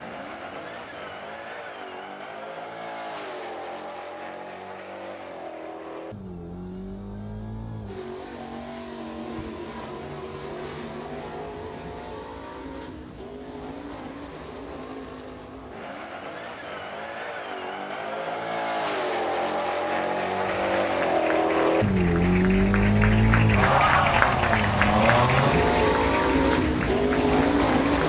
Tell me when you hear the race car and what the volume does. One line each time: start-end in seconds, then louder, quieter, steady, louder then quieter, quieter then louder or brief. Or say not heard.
0.0-28.0 louder.